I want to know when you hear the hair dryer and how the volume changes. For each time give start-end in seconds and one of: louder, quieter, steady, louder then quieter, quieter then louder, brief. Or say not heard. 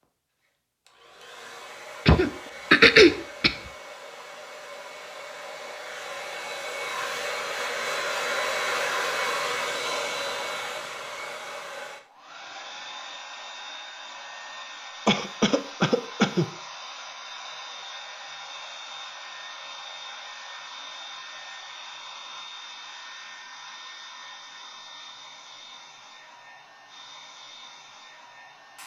0.0-28.8 louder then quieter.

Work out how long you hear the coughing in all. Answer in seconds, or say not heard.
3 s.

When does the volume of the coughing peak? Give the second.
3 s.